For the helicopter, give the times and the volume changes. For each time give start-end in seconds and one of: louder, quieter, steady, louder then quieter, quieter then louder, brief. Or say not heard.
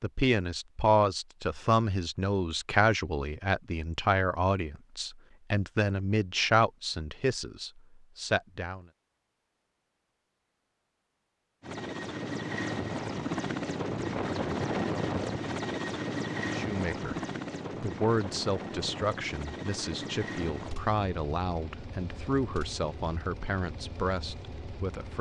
11.6-25.1 quieter.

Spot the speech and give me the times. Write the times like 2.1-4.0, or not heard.
0.0-8.8, 16.4-17.2, 17.8-25.1.